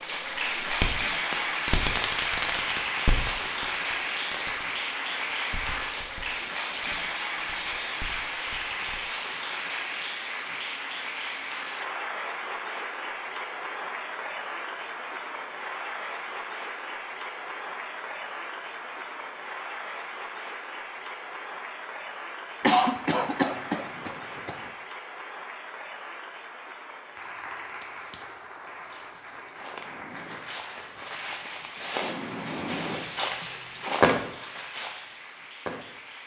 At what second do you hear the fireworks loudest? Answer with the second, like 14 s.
34 s.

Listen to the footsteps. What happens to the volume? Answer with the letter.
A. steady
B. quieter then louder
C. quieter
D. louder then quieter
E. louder
E.